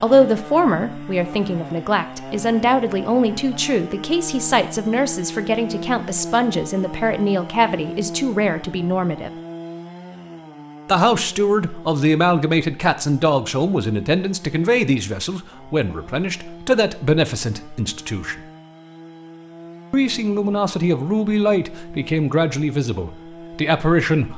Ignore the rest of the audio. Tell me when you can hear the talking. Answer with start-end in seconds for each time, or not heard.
0.0-9.3, 10.8-18.4, 19.9-24.3.